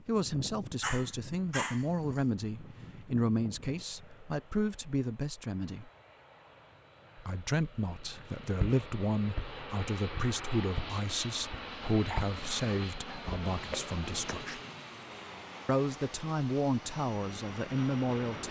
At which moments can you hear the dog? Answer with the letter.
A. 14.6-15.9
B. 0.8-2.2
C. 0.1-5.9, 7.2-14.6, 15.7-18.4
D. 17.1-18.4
B.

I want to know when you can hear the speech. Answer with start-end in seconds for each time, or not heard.
0.1-5.9, 7.2-14.6, 15.7-18.4.